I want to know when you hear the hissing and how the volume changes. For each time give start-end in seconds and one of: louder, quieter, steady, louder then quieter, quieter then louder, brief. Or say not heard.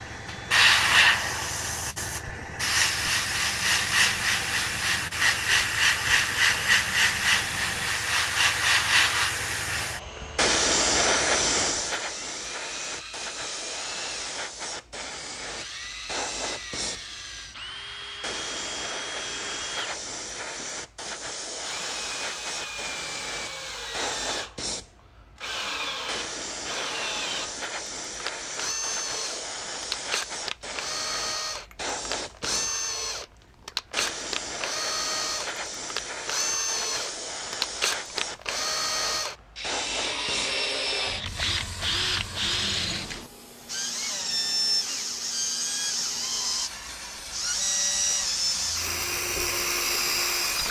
0.0-50.6 quieter.